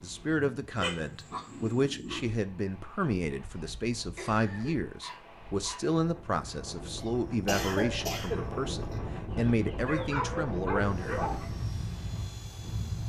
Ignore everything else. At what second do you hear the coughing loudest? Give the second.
8 s.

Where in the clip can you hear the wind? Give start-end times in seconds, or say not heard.
0.0-13.0.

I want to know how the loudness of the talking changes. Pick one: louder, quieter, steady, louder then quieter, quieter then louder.
steady.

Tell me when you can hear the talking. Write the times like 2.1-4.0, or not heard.
0.0-11.2.